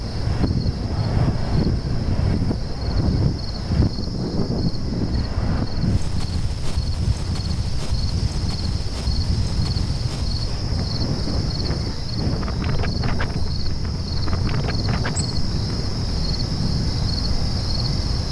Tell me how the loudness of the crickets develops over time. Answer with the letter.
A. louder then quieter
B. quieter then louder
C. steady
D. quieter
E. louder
E.